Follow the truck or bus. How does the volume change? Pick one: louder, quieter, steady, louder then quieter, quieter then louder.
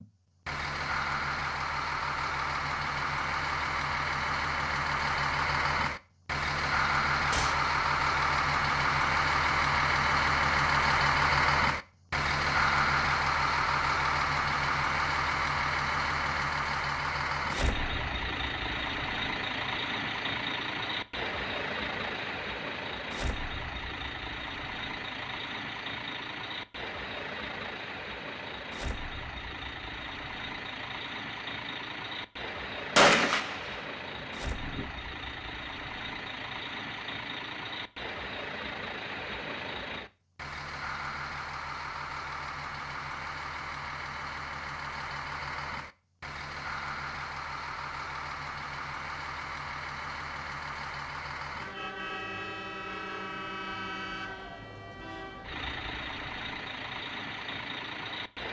quieter.